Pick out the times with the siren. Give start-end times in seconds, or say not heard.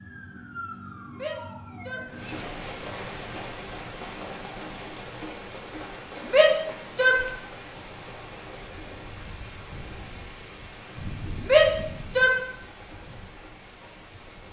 0.0-2.5.